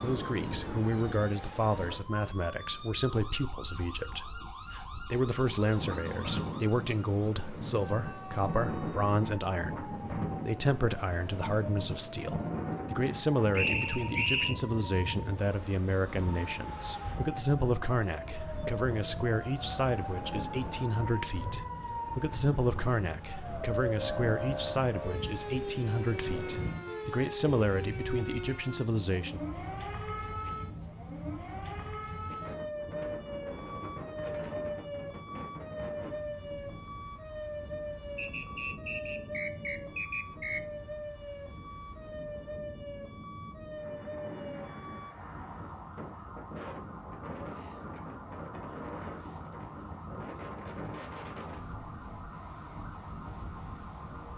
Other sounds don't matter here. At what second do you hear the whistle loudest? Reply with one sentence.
The loudest moment of the whistle is at 14 seconds.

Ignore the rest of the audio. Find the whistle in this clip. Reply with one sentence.
The whistle can be heard from 13.5 to 14.6 s and from 38.1 to 40.6 s.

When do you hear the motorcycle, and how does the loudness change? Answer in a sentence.
The motorcycle can't be heard in this clip.